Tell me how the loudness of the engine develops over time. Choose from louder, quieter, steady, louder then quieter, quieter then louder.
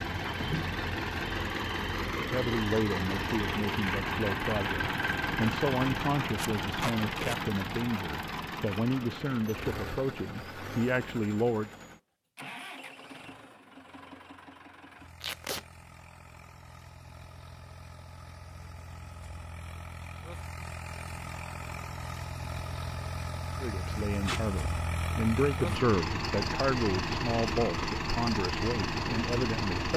quieter then louder.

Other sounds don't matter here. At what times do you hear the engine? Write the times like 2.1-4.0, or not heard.
0.0-29.9.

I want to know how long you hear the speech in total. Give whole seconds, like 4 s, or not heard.
16 s.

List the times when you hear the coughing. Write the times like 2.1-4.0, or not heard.
not heard.